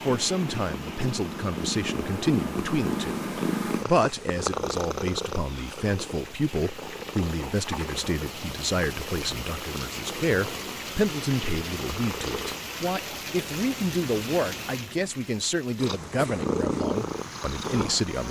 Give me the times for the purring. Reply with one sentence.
The purring can be heard from 0.0 to 12.7 s and from 15.8 to 18.1 s.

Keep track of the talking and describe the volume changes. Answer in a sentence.
The loudness of the talking stays about the same.